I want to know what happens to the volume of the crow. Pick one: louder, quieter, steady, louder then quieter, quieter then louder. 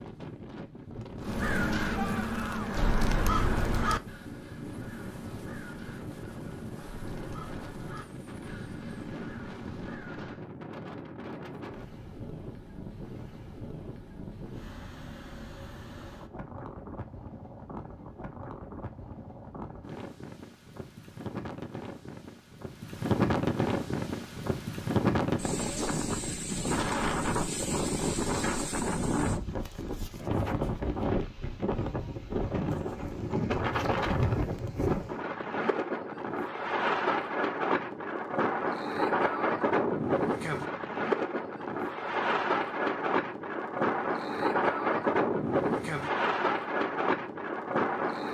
quieter.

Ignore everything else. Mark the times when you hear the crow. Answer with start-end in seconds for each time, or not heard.
1.2-10.5.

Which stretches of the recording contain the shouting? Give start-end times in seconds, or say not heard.
1.9-2.8.